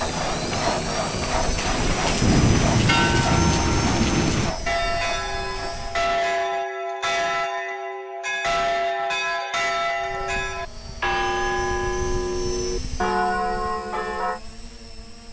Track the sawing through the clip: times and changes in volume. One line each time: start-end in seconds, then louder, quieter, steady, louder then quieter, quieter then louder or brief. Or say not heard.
0.0-5.9 quieter.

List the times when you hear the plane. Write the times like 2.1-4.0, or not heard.
0.0-6.2, 9.9-15.2.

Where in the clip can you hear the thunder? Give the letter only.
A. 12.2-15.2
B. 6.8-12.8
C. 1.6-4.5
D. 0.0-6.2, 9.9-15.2
C.